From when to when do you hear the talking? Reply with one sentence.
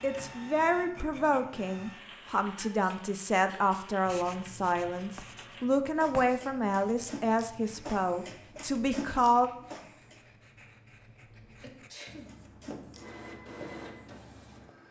You can hear the talking from 0.0 to 9.5 s.